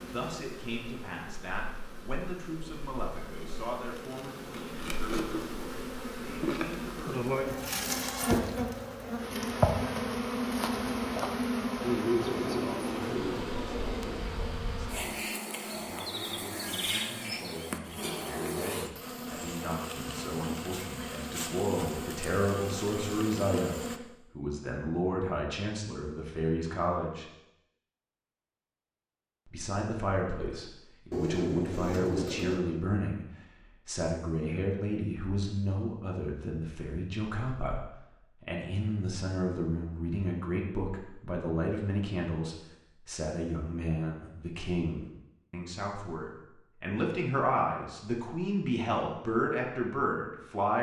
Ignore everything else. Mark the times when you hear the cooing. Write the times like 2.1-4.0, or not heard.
12.2-14.2, 31.1-32.6.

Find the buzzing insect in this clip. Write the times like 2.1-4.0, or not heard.
0.0-24.0.